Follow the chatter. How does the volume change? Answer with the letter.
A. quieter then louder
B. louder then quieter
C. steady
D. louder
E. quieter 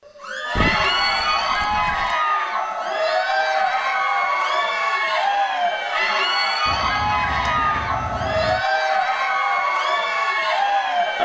C.